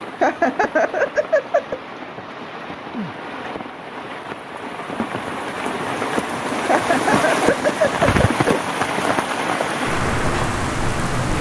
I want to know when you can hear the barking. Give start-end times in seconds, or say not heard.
not heard.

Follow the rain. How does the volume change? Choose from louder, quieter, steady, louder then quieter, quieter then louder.
louder.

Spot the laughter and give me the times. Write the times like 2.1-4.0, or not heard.
0.2-1.8, 6.7-8.6.